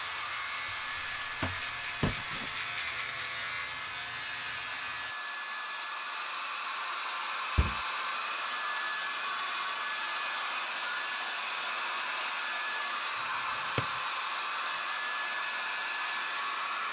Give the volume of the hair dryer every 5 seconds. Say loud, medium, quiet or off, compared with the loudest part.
medium, loud, loud, loud.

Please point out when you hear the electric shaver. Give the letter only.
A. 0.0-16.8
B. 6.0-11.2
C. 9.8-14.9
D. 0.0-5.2
D.